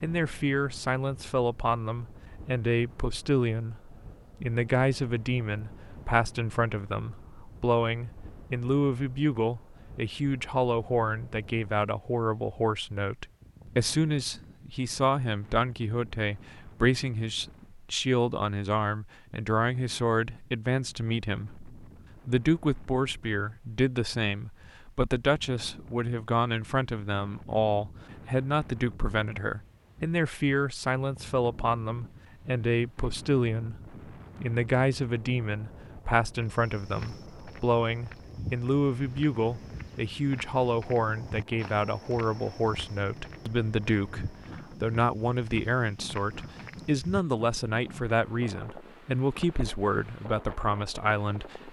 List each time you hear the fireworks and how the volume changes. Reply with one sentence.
The fireworks can't be heard in this clip.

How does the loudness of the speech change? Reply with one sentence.
The loudness of the speech stays about the same.